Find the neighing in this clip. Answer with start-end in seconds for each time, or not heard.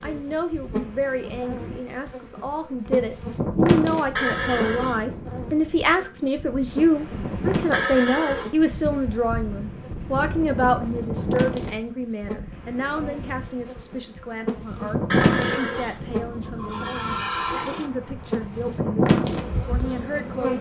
4.2-5.0, 7.7-8.5, 15.1-17.9.